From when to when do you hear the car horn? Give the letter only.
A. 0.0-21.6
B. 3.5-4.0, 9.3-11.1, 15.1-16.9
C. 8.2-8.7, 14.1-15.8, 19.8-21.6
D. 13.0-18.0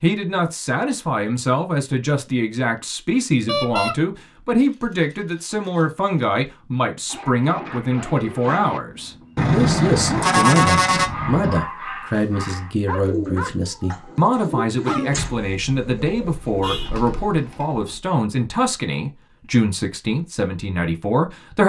B.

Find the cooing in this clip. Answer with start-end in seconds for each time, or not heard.
13.0-18.0.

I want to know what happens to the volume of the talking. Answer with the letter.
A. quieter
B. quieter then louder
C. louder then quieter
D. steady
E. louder
D.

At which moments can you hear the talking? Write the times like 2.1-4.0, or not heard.
0.0-21.6.